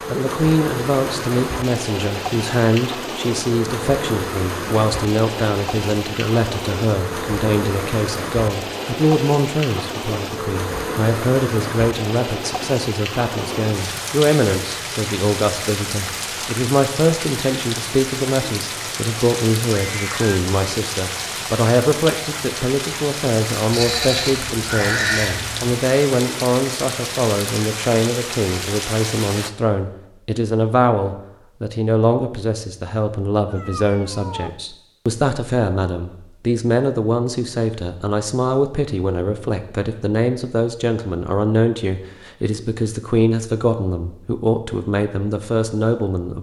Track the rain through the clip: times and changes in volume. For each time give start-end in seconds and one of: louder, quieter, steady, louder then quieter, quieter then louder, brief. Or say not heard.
0.0-29.5 steady.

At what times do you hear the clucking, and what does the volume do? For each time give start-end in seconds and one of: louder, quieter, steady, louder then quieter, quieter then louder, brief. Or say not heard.
not heard.